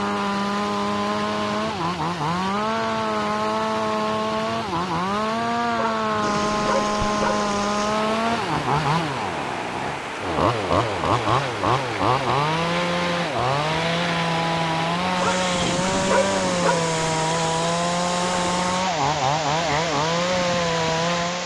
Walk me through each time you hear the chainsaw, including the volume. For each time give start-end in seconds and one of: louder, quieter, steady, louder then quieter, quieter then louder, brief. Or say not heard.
0.0-21.4 steady.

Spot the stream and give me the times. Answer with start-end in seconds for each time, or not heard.
6.2-21.4.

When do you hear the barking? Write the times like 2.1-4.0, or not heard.
5.8-7.5, 15.2-16.9.